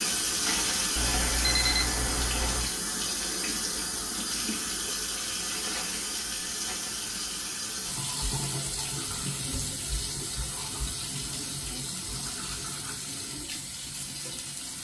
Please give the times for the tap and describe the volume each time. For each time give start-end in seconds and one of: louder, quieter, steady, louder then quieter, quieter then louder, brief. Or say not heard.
0.0-14.7 quieter.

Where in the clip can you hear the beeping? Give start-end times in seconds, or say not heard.
0.9-2.7.